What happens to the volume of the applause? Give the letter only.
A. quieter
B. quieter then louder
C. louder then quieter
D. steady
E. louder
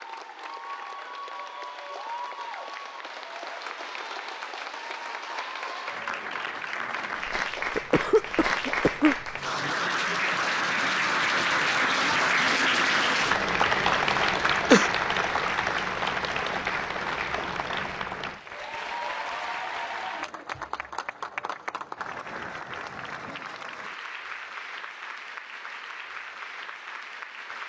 C.